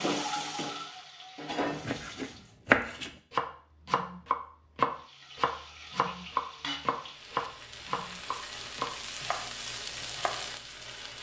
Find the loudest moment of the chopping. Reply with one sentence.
The loudest moment of the chopping is at 3 seconds.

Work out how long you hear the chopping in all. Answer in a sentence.
You can hear the chopping for 9 seconds altogether.